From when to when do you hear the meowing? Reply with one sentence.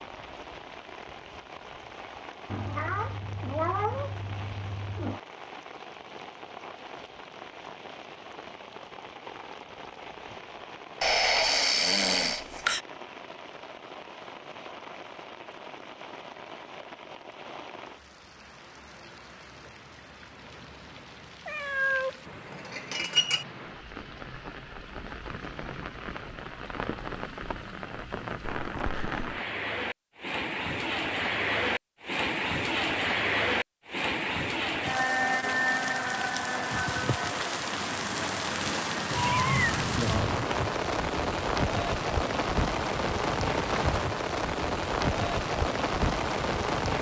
You can hear the meowing from 2.5 to 5.2 s, from 21.4 to 23.4 s and from 39.1 to 40.5 s.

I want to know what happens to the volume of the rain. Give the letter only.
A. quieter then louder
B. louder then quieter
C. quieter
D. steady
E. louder
E.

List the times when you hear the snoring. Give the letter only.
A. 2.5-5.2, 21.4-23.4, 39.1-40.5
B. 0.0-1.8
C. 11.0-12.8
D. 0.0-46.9
C.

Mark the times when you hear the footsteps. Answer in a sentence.
The footsteps can't be heard in this clip.